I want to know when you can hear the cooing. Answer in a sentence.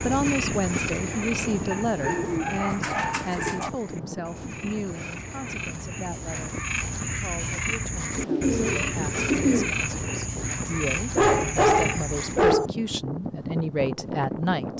You can hear the cooing from 2.0 to 3.7 s and from 8.2 to 9.8 s.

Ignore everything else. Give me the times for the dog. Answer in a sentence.
You can hear the dog from 1.7 to 3.7 s and from 11.2 to 12.7 s.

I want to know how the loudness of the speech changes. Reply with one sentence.
The volume of the speech goes down, then up.